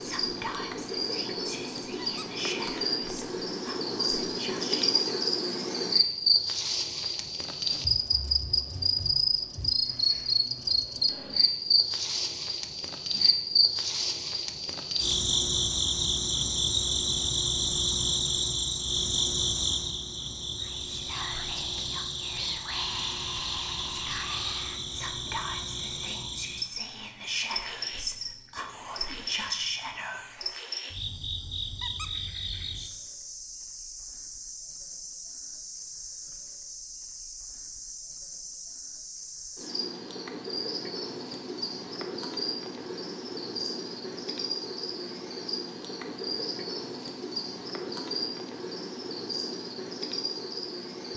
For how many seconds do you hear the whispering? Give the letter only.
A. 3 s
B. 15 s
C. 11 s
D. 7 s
B.